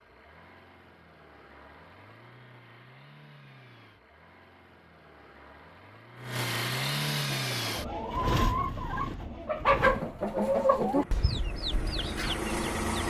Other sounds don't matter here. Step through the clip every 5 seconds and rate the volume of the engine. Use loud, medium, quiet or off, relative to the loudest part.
quiet, loud, loud.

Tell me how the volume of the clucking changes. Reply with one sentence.
The volume of the clucking goes up, then down.